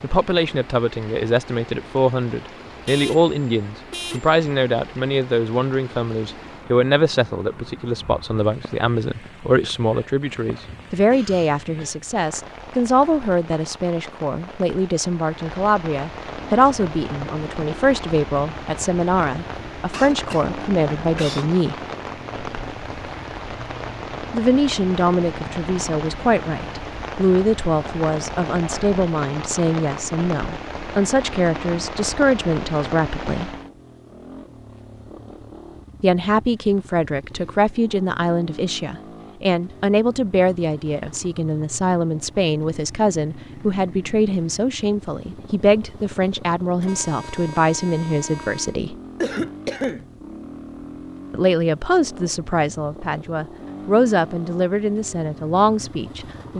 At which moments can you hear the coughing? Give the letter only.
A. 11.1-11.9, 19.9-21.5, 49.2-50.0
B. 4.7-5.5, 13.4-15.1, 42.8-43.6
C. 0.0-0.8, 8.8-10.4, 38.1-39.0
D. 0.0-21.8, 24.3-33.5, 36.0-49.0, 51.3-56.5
A.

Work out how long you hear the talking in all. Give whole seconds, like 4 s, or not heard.
49 s.